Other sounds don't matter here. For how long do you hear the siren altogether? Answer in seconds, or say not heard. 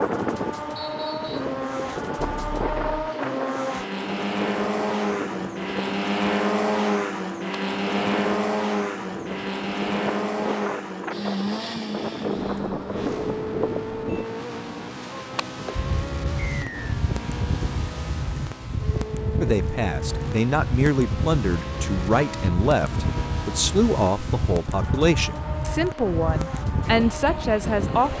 not heard.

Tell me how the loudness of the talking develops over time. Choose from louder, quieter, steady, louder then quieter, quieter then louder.
steady.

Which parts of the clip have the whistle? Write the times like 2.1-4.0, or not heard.
0.8-1.5, 16.5-16.9.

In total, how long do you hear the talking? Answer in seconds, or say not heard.
9 s.